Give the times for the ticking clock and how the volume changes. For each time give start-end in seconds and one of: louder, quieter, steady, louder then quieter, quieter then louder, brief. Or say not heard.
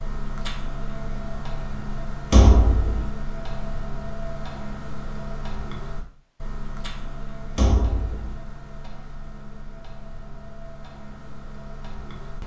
0.0-12.4 quieter.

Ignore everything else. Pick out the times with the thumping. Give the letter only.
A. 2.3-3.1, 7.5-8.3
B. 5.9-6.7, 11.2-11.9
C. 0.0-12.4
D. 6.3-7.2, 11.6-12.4
A.